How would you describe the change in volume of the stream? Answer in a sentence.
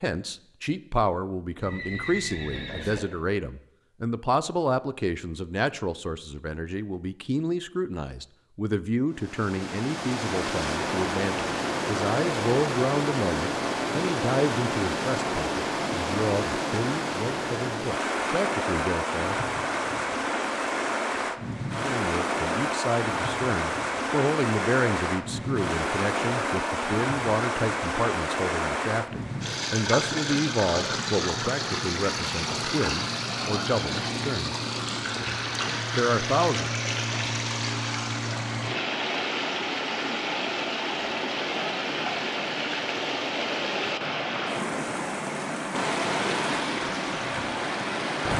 The volume of the stream stays about the same.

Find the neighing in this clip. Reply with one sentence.
You can hear the neighing from 1.6 to 3.0 s.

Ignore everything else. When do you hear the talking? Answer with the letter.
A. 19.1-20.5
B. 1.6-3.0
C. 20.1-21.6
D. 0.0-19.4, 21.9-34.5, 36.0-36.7
D.